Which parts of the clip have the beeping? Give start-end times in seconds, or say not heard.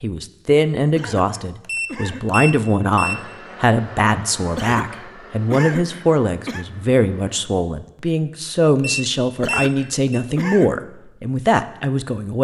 1.6-3.1, 8.8-10.2.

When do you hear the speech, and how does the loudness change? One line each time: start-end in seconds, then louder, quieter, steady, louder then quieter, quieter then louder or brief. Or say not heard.
0.0-12.4 steady.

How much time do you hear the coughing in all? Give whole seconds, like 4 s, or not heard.
5 s.